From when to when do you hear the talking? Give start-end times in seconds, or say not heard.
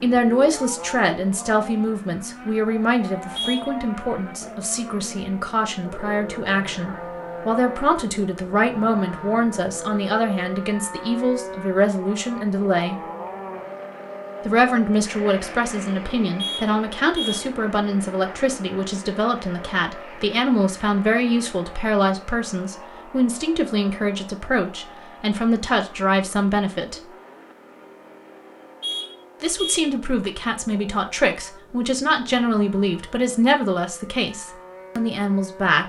0.0-13.0, 14.4-27.1, 29.4-35.8.